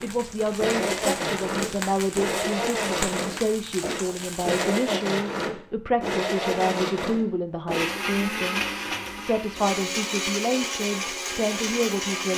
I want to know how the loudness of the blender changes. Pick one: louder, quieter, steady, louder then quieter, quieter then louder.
steady.